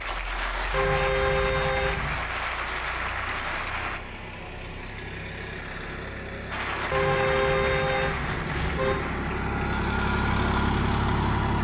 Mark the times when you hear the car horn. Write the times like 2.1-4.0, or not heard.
0.7-2.2, 6.9-9.0.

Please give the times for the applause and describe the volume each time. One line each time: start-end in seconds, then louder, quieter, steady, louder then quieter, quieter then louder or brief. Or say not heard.
0.0-4.0 steady
6.5-11.6 quieter.